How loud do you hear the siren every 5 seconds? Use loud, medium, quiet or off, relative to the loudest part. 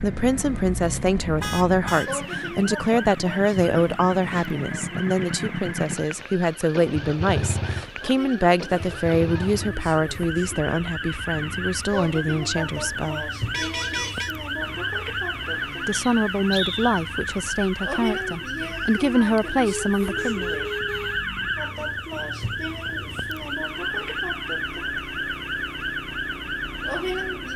medium, medium, loud, loud, loud, loud.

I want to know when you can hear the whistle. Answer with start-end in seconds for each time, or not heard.
15.9-17.0.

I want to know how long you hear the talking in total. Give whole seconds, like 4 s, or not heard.
18 s.